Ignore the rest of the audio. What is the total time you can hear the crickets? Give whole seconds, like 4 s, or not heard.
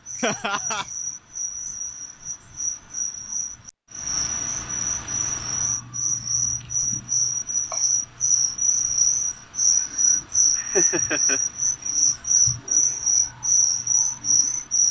15 s.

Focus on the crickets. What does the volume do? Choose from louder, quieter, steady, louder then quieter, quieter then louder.
louder.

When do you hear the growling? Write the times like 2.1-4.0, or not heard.
not heard.